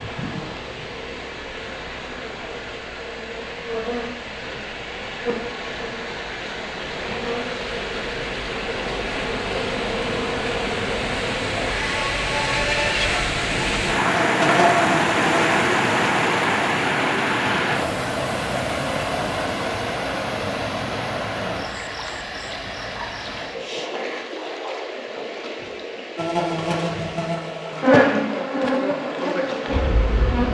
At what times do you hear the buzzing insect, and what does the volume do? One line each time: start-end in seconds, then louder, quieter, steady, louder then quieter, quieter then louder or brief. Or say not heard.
0.0-15.6 louder
26.1-30.4 louder then quieter.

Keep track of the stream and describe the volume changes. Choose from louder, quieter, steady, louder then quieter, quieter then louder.
louder then quieter.